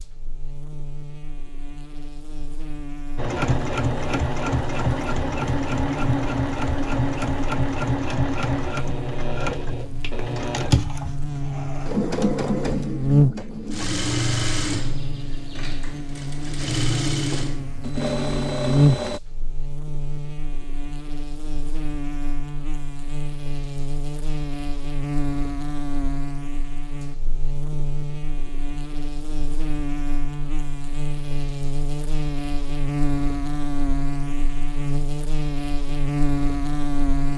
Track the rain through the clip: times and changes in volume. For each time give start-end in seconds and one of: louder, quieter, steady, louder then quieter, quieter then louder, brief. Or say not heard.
not heard.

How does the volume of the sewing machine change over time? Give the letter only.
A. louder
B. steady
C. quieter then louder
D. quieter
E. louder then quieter
B.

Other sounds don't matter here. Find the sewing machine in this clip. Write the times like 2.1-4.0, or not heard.
3.1-19.2.